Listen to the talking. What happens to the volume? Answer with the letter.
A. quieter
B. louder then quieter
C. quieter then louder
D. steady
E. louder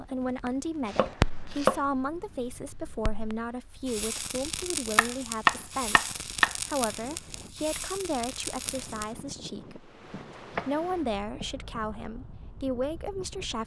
D.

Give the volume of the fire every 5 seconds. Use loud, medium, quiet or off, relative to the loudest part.
loud, medium, off.